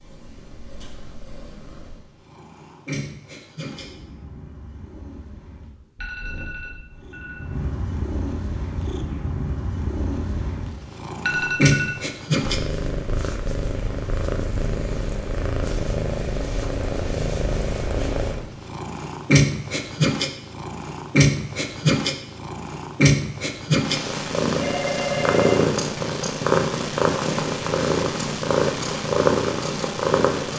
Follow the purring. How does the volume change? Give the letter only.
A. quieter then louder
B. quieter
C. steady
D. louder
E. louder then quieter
D.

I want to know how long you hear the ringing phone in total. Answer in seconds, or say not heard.
3 s.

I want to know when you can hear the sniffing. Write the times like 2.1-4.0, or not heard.
not heard.